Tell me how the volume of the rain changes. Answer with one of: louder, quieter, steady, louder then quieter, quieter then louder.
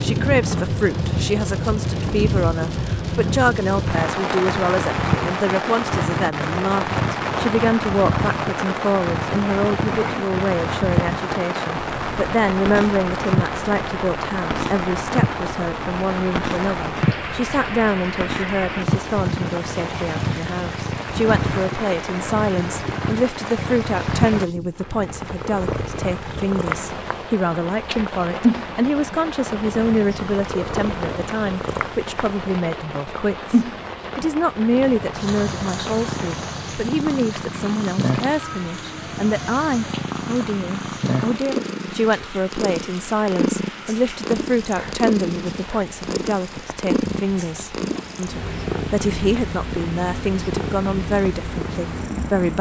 quieter.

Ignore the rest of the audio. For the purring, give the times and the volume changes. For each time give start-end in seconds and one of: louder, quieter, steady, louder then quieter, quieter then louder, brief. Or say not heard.
0.0-52.5 steady.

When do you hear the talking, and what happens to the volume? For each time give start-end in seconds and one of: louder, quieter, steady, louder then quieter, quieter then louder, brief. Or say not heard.
0.0-52.5 steady.